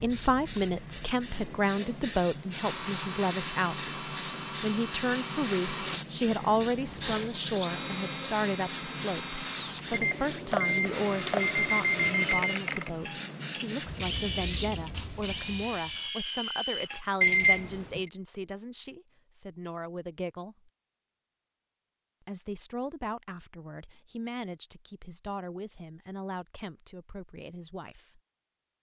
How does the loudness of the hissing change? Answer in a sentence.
The loudness of the hissing stays about the same.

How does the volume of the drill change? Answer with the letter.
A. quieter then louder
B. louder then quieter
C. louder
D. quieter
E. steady
E.